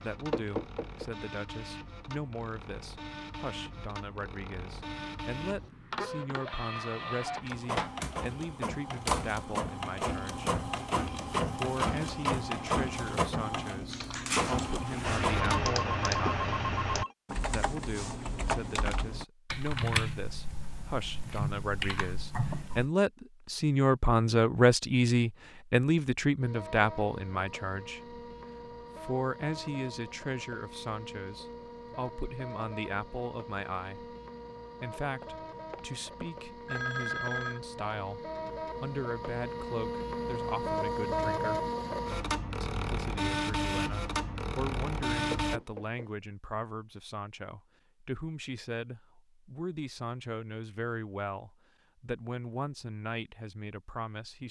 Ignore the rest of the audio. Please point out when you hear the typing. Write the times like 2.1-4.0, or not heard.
13.9-22.9.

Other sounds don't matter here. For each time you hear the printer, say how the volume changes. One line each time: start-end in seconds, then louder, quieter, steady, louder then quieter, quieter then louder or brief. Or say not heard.
0.0-15.7 louder
26.4-45.6 louder.